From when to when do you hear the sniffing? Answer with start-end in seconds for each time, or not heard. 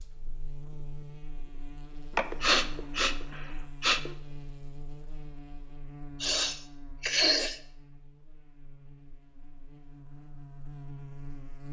2.1-4.2, 6.2-7.6.